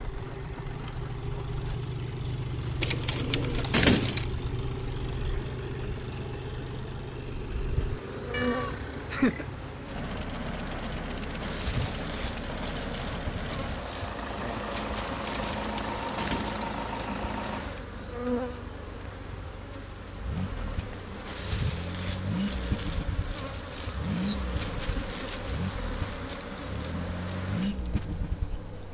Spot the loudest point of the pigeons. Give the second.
4 s.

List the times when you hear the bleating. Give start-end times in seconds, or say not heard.
not heard.